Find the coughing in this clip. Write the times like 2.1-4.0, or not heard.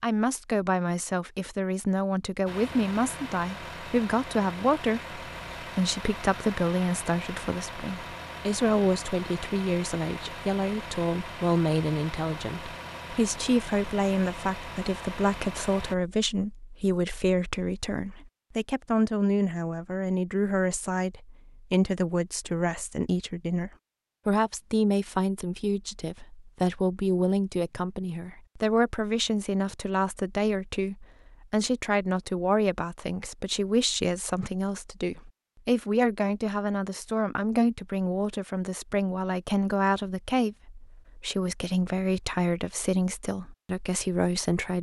not heard.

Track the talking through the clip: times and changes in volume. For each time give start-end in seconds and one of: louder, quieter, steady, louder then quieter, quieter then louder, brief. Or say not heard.
0.0-44.7 steady.